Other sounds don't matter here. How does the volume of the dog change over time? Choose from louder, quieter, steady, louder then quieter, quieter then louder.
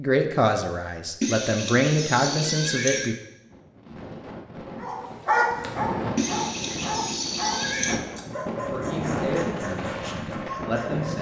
quieter.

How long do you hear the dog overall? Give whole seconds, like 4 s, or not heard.
6 s.